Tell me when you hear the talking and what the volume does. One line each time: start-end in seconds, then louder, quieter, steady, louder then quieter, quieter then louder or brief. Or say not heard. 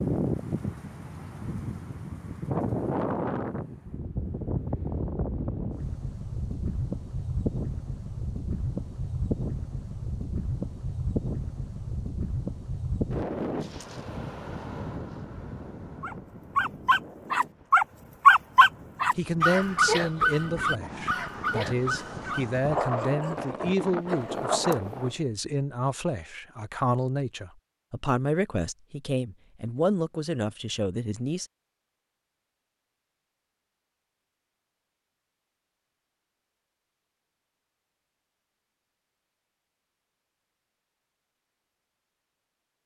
19.1-31.4 steady.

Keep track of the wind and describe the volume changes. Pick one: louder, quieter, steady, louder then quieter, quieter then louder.
quieter then louder.